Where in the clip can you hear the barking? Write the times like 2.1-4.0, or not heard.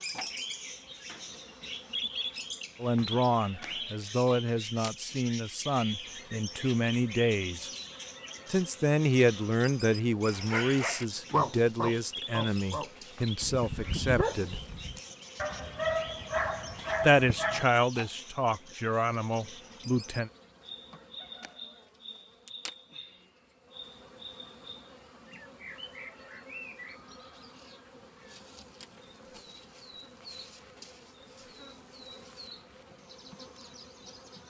10.2-17.6.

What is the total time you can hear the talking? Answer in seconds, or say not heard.
14 s.